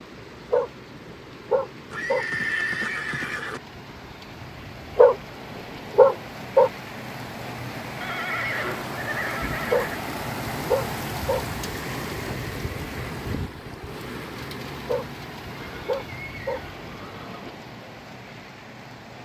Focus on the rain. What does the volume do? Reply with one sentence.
The volume of the rain goes up, then down.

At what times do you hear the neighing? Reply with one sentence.
The neighing can be heard from 1.9 to 3.6 s, from 8.0 to 10.0 s and from 15.5 to 17.5 s.